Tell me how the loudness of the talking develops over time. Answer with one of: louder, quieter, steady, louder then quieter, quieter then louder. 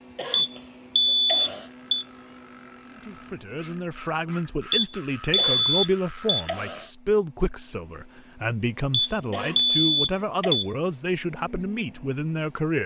steady.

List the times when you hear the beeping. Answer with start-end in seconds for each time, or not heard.
0.3-2.0, 4.7-6.5, 8.9-10.7.